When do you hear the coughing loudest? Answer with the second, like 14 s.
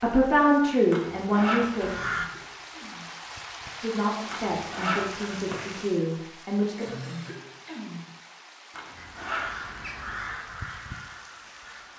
7 s.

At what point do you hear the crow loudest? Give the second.
2 s.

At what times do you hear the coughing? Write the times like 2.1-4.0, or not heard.
2.0-3.2, 6.8-8.2.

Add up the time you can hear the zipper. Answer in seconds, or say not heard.
4 s.